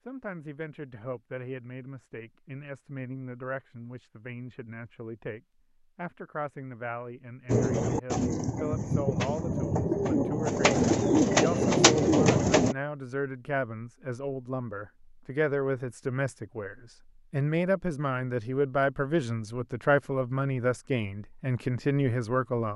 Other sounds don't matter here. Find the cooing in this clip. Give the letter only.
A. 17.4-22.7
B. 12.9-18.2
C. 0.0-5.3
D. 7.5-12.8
D.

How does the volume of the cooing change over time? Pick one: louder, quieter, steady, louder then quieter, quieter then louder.
louder.